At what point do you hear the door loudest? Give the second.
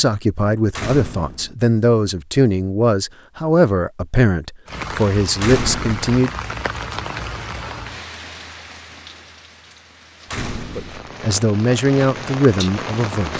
6 s.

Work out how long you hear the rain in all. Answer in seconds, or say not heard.
9 s.